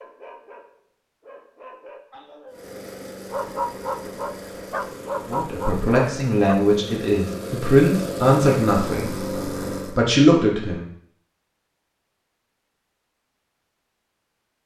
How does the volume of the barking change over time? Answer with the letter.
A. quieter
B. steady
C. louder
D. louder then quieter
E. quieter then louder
C.